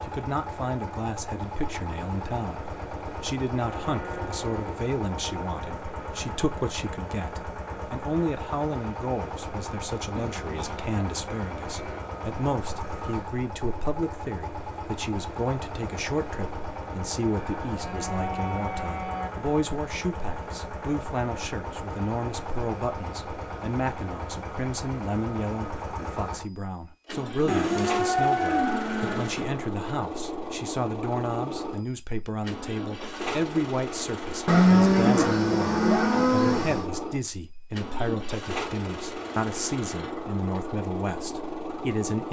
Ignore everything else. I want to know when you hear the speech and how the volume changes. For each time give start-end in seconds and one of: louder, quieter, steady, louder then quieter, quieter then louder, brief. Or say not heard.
0.0-42.2 steady.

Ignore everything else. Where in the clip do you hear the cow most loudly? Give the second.
35 s.